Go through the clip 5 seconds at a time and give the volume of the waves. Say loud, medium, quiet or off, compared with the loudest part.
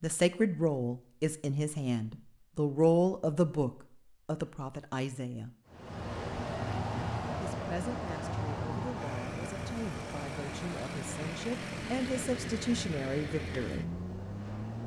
off, loud, medium.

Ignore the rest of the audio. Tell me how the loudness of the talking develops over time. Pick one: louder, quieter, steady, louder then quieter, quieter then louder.
quieter then louder.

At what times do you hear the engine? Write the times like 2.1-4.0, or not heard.
8.9-14.8.